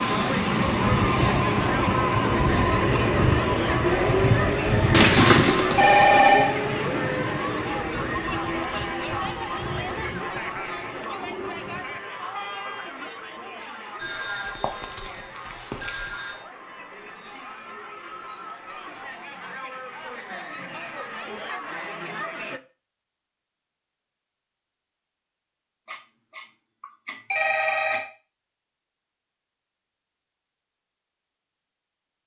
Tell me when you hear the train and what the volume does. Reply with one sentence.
The train can be heard from 0.0 to 12.9 s, getting quieter.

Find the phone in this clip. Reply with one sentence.
You can hear the phone from 4.9 to 6.5 s, from 14.0 to 16.4 s and from 25.9 to 28.1 s.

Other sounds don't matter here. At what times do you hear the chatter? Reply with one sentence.
You can hear the chatter from 0.0 to 22.6 s.